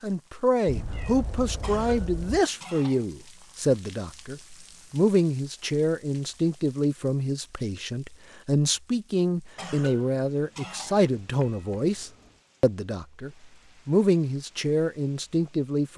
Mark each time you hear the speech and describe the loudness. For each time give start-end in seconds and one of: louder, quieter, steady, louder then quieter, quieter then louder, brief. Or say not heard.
0.0-15.9 steady.